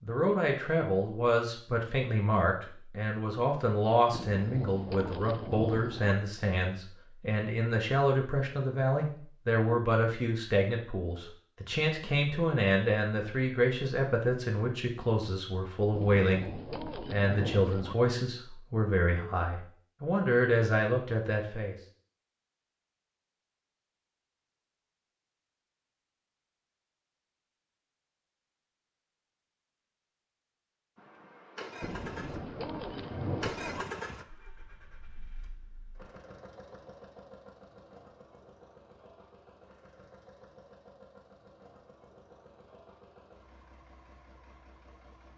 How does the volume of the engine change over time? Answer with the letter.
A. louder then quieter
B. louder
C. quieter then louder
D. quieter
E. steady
D.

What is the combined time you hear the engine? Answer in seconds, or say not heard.
14 s.